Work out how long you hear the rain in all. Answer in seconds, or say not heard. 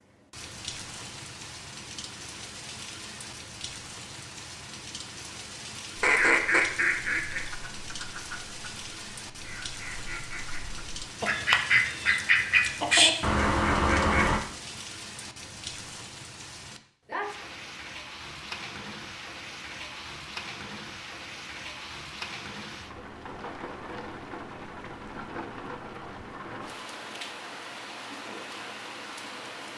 30 s.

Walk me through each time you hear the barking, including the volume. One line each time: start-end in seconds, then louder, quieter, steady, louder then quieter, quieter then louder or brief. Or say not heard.
not heard.